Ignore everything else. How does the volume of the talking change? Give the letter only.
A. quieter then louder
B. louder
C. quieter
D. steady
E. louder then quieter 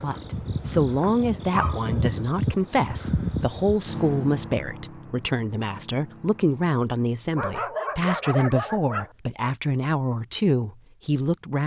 D.